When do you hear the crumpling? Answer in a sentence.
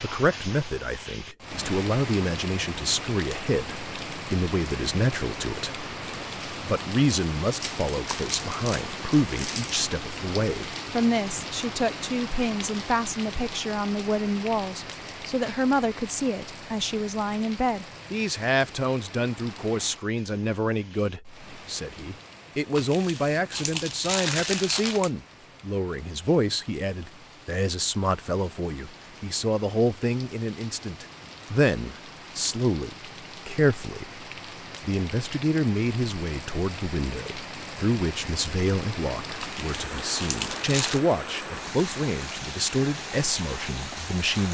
You can hear the crumpling from 7.6 to 9.8 s, from 22.8 to 25.1 s and from 39.4 to 41.0 s.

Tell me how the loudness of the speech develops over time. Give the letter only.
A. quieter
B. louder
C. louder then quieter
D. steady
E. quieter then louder
D.